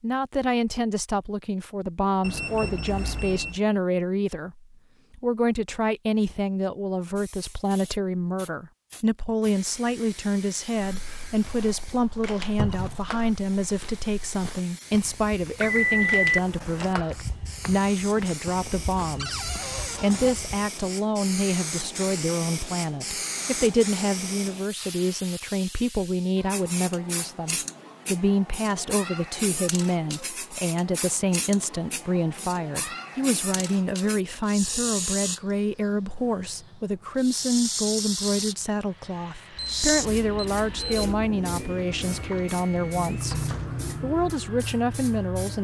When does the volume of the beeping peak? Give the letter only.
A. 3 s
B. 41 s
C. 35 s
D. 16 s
D.